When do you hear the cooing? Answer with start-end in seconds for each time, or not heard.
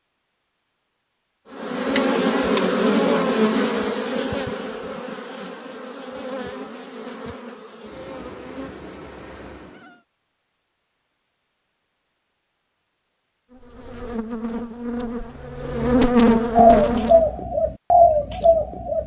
16.6-19.0.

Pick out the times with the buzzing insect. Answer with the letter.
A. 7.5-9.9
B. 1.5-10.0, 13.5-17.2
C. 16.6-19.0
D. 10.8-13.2
B.